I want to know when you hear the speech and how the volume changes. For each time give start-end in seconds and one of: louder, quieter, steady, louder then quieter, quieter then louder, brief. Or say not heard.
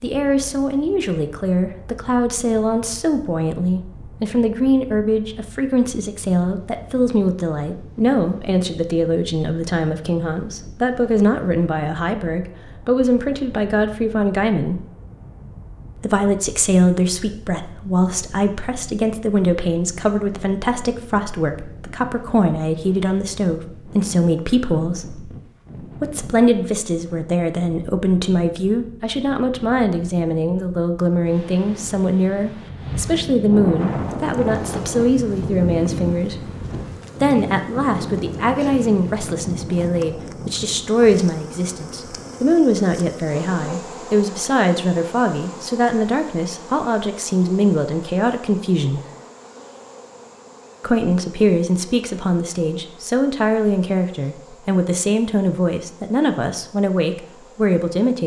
0.0-14.8 steady
15.9-36.5 steady
37.2-49.0 steady
50.8-58.2 steady.